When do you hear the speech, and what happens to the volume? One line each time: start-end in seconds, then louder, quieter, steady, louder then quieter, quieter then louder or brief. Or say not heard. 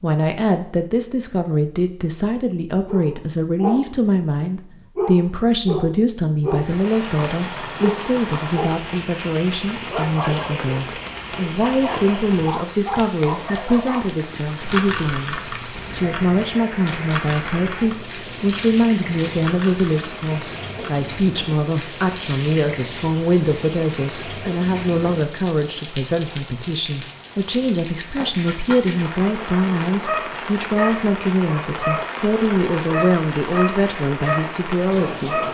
0.0-35.4 steady.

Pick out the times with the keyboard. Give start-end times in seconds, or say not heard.
14.6-21.1.